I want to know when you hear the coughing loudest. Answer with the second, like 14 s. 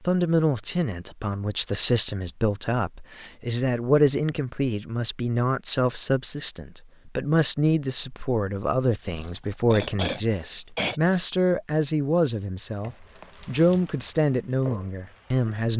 11 s.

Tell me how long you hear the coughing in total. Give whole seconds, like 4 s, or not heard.
2 s.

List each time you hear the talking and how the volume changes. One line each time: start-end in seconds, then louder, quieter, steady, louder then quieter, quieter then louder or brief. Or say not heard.
0.0-15.7 steady.